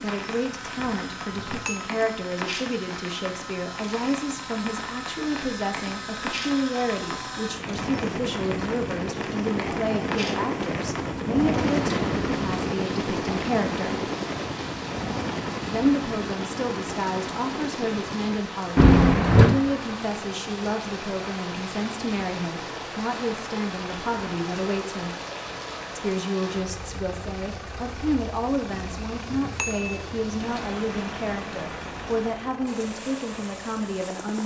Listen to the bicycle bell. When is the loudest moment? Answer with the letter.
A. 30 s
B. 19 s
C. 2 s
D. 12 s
B.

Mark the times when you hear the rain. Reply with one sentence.
You can hear the rain from 0.0 to 34.4 s.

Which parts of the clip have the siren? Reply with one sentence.
The siren can't be heard in this clip.